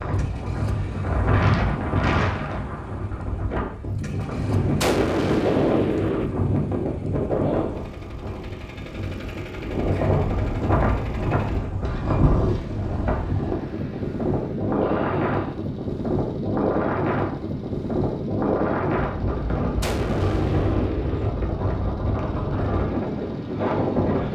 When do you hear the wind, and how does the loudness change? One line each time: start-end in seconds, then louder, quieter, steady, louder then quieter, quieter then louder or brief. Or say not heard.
0.0-24.3 steady.